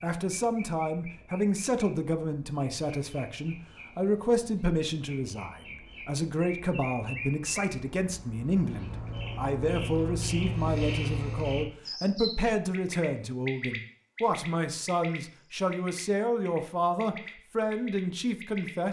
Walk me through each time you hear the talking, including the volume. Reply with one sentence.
You can hear the talking from 0.0 to 18.8 s, at a steady volume.